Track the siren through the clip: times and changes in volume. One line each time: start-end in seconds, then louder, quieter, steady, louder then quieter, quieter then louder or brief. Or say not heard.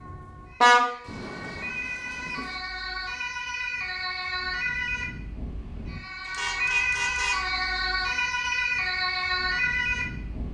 0.0-10.5 louder.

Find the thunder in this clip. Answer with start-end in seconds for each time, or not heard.
1.0-2.6.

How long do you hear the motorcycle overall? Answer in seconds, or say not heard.
not heard.